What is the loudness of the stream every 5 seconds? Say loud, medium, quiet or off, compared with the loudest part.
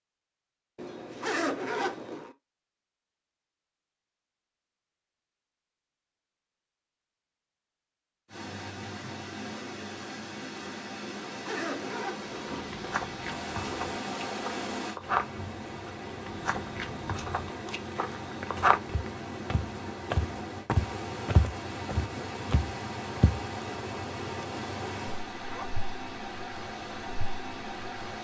off, loud, loud, loud, loud, loud.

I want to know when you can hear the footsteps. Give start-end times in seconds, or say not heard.
12.3-23.4.